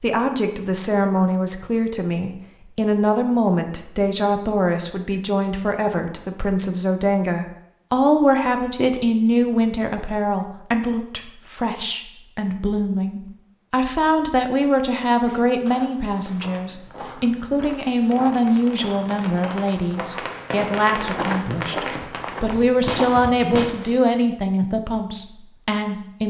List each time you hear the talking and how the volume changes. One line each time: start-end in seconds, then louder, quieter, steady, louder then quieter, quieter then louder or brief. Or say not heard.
0.0-26.2 steady.